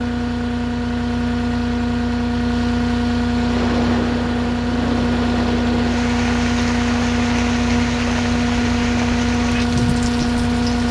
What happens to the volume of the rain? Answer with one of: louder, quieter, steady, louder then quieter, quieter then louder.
steady.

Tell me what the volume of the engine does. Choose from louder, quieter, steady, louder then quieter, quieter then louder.
steady.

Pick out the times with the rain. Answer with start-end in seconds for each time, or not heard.
3.4-10.8.